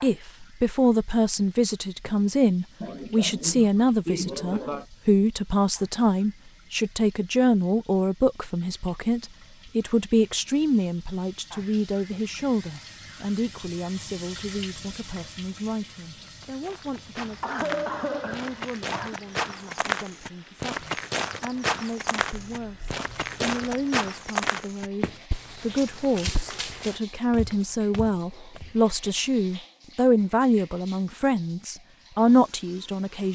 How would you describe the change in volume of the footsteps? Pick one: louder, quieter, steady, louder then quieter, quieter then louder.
louder then quieter.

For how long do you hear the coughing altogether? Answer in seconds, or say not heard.
6 s.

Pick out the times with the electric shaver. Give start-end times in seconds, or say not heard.
not heard.